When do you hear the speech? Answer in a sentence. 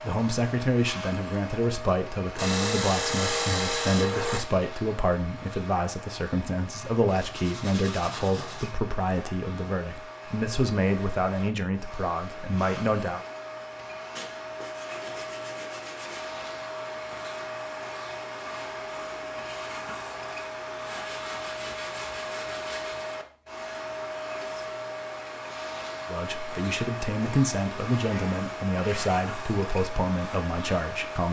You can hear the speech from 0.0 to 13.2 s and from 26.1 to 31.2 s.